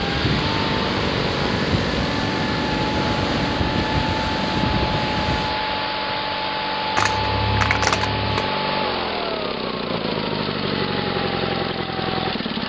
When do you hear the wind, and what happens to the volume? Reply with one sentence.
The wind can be heard from 0.0 to 7.7 s, getting quieter.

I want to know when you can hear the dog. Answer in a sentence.
You can hear the dog from 7.0 to 8.5 s.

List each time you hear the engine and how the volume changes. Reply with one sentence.
The engine can be heard from 0.0 to 12.6 s, at a steady volume.